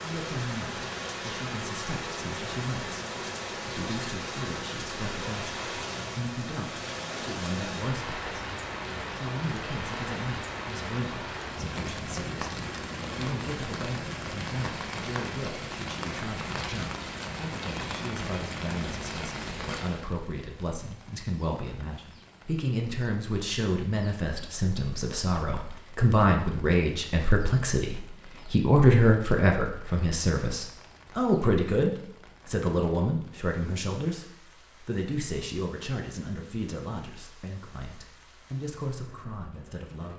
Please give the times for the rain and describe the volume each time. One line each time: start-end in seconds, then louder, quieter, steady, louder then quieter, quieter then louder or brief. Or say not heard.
0.0-40.1 quieter.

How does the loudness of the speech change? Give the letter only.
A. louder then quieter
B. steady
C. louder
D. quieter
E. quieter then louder
A.